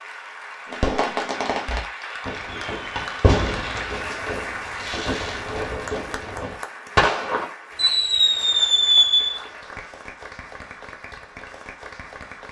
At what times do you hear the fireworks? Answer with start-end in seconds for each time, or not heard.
0.7-9.4.